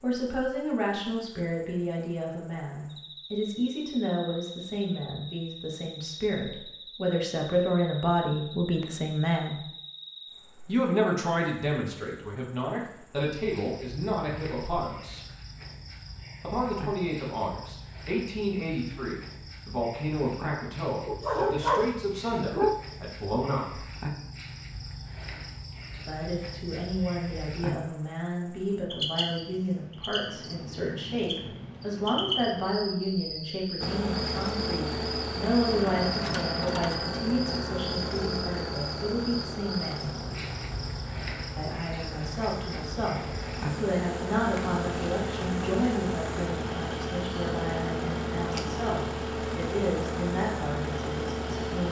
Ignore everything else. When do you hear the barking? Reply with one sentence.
The barking can be heard from 21.1 to 22.8 s.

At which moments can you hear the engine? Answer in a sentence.
The engine can be heard from 33.8 to 51.8 s.